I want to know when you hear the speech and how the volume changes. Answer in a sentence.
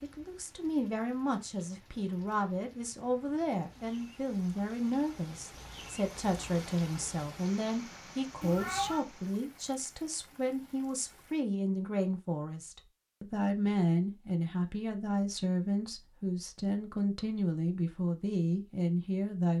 The speech can be heard from 0.0 to 19.5 s, at a steady volume.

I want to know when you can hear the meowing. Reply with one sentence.
You can hear the meowing from 8.4 to 9.1 s.